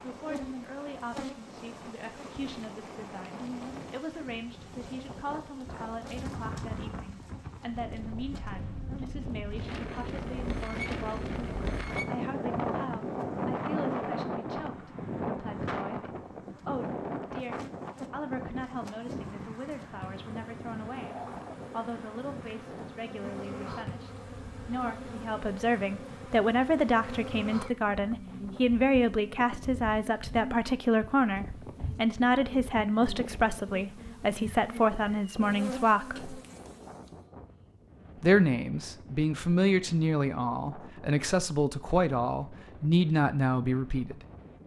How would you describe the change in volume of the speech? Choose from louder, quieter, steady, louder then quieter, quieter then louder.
louder.